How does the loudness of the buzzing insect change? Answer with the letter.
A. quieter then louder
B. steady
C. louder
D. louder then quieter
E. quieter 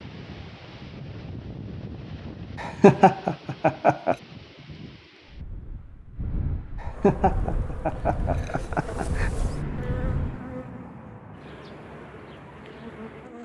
D.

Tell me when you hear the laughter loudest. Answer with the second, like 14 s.
3 s.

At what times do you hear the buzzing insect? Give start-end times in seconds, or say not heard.
6.9-13.4.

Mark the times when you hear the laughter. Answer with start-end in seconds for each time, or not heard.
2.6-4.2, 6.8-9.3.